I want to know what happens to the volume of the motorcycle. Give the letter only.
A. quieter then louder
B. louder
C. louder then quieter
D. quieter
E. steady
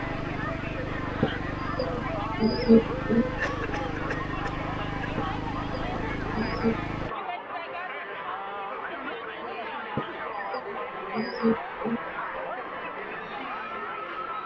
E.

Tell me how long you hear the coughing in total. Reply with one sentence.
The coughing can be heard for 2 seconds in total.